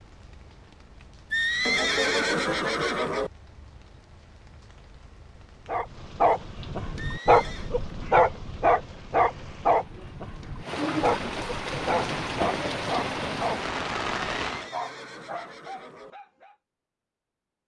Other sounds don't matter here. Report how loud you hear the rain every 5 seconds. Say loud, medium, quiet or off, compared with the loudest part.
quiet, quiet, loud, off.